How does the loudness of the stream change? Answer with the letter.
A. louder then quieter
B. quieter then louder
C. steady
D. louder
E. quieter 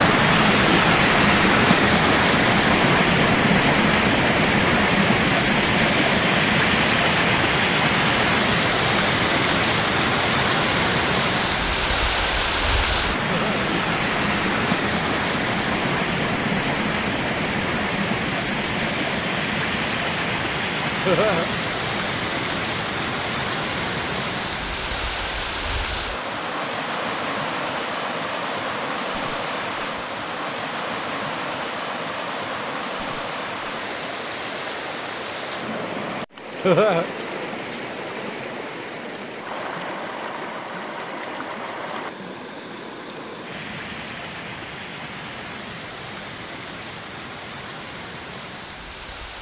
E.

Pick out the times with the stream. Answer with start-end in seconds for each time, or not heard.
0.0-49.3.